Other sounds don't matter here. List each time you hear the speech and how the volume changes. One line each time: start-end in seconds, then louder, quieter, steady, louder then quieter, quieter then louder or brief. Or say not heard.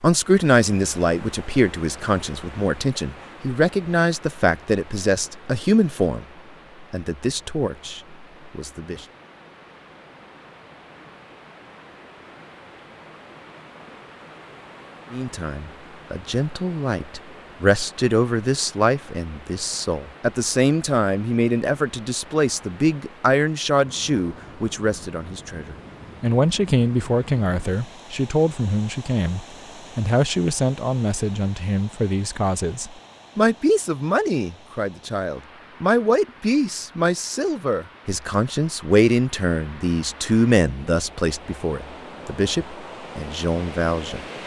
0.0-9.1 quieter
15.1-44.2 steady.